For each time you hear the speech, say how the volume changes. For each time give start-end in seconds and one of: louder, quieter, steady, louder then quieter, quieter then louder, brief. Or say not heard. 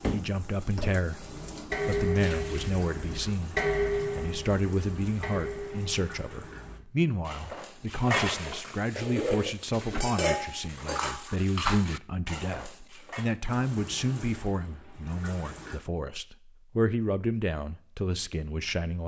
0.1-19.0 steady.